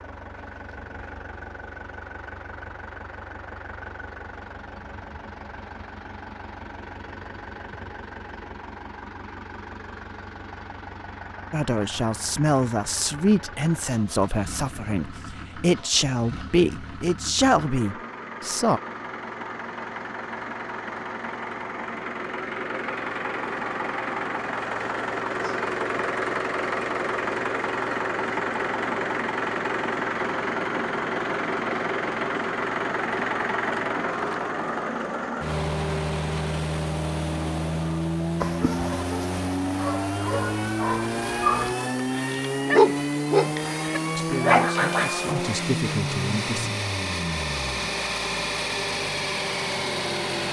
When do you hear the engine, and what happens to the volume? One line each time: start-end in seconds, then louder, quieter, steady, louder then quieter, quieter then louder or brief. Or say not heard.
0.0-50.4 louder.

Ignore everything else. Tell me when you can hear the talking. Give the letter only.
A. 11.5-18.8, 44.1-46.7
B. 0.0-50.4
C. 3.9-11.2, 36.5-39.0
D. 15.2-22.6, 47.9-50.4
A.